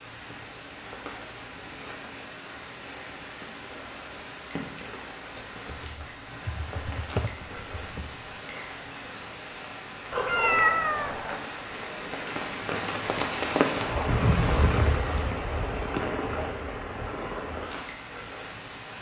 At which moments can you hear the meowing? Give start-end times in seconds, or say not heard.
10.1-11.4.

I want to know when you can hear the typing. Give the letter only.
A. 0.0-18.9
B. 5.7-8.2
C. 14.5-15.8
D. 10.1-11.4
B.